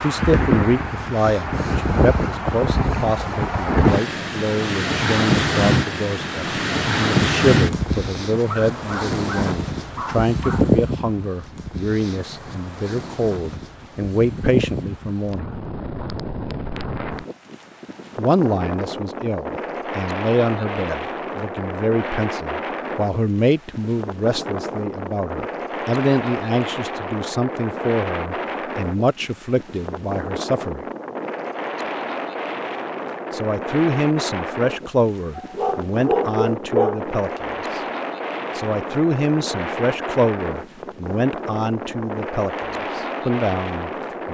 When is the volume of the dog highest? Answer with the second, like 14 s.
37 s.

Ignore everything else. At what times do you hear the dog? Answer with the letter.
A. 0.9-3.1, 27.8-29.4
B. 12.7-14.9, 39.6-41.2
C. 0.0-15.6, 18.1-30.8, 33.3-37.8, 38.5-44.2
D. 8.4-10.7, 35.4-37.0
D.